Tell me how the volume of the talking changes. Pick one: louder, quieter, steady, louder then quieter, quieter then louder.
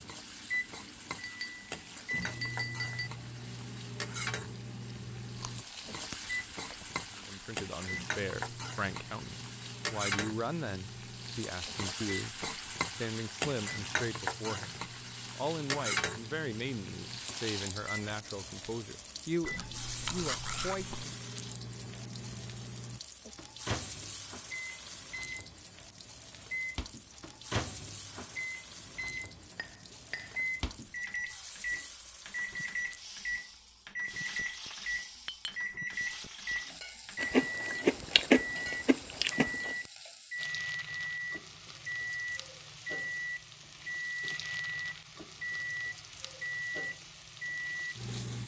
steady.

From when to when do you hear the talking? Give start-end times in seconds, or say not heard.
7.2-20.9.